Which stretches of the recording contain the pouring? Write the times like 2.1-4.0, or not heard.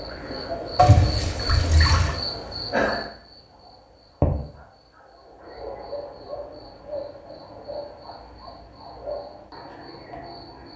0.8-2.1.